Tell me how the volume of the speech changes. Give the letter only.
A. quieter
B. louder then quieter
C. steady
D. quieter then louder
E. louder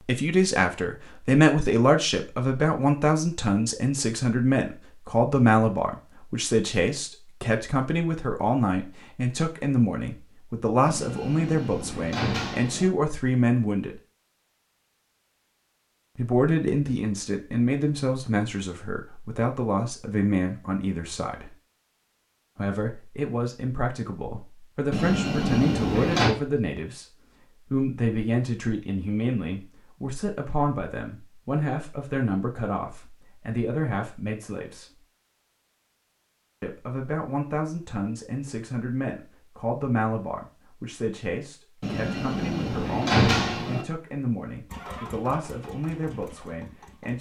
A.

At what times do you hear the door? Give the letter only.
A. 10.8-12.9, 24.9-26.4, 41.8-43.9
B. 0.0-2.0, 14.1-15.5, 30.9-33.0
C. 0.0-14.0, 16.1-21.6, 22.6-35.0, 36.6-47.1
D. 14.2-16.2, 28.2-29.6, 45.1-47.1
A.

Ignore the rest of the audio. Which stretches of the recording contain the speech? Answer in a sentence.
You can hear the speech from 0.0 to 14.0 s, from 16.1 to 21.6 s, from 22.6 to 35.0 s and from 36.6 to 47.1 s.